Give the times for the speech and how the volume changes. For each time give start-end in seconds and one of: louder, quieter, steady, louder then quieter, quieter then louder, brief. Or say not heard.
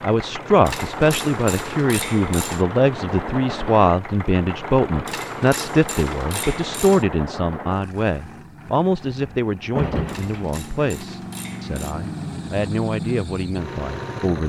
0.0-14.4 quieter.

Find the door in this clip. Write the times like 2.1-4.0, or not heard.
9.0-10.5.